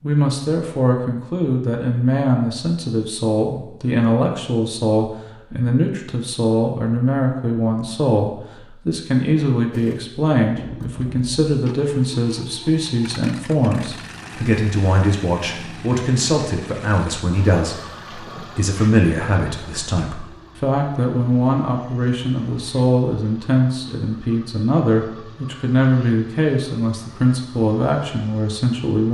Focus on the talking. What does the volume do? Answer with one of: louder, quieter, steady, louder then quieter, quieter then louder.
steady.